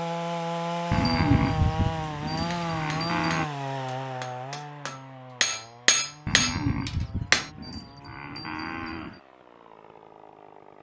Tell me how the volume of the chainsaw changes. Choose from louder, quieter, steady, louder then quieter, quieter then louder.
quieter.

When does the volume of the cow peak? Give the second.
1 s.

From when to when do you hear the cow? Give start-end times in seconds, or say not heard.
0.9-3.5, 6.2-9.2.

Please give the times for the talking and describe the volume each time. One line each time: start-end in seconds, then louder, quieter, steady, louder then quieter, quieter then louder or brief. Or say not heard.
not heard.